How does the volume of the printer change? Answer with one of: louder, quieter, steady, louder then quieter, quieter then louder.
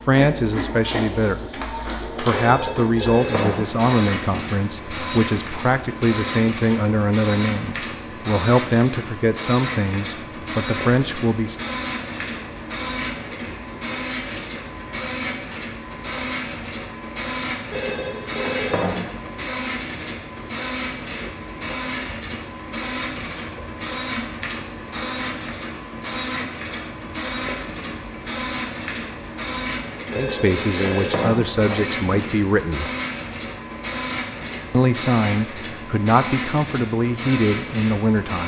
steady.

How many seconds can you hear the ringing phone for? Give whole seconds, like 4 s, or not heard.
6 s.